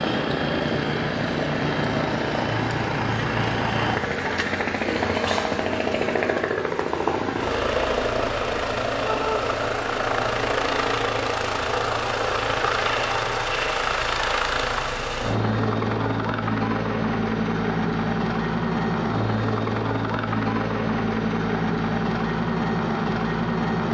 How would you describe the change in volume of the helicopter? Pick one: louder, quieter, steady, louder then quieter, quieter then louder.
steady.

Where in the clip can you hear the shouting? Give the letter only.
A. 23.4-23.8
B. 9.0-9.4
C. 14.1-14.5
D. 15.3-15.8
B.